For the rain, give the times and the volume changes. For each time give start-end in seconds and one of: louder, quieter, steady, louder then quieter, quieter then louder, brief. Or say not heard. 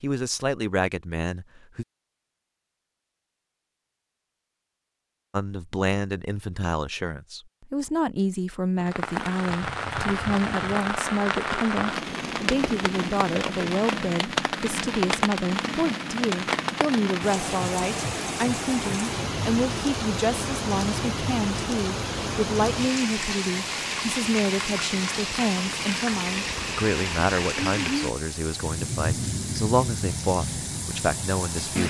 8.8-31.8 steady.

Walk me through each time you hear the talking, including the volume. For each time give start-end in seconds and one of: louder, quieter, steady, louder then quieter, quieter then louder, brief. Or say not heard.
0.0-1.9 brief
5.3-31.8 steady.